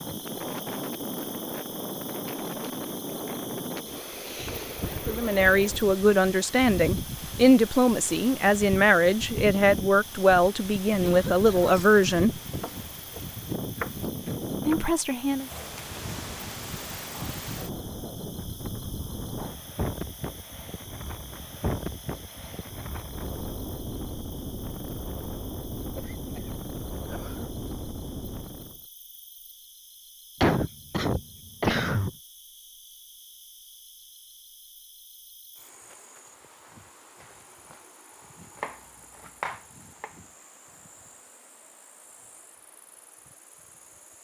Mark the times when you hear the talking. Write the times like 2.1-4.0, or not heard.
5.0-12.3, 14.7-15.4.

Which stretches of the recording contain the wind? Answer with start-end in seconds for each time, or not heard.
0.0-28.8.